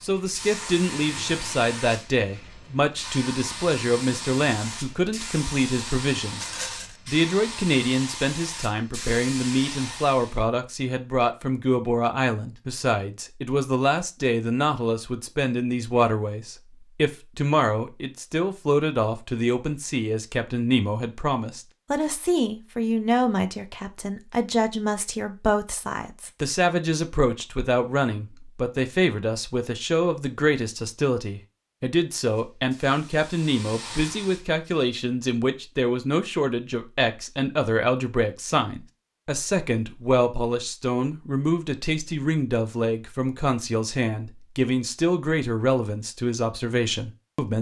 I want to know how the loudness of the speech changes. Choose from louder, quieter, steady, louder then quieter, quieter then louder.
steady.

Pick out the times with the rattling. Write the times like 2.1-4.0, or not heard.
6.3-7.0.